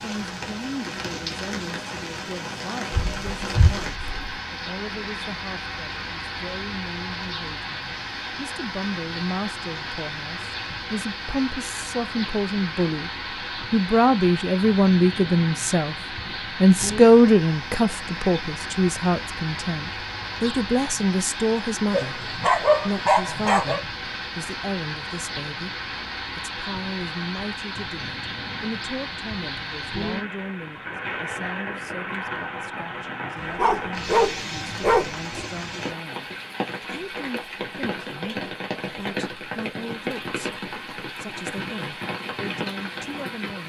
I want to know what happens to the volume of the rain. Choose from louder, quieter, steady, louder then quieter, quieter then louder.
steady.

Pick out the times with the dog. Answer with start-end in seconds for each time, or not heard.
2.9-4.3, 21.9-23.8, 33.5-35.5.